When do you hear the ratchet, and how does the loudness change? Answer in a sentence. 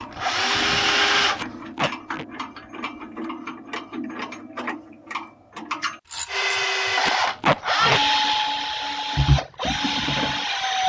The ratchet can be heard from 0.0 to 6.6 s, at a steady volume.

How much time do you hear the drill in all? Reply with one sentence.
You can hear the drill for 6 seconds altogether.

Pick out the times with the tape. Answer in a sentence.
The tape can be heard from 1.4 to 2.2 s and from 7.0 to 8.0 s.